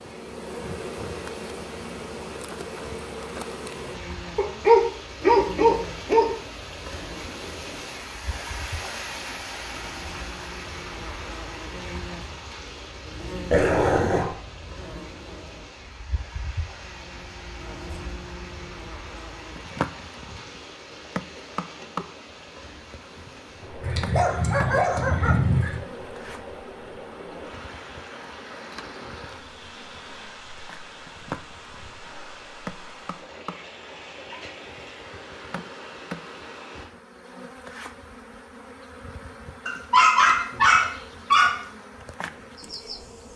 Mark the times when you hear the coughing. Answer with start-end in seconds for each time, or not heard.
not heard.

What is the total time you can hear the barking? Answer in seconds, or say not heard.
7 s.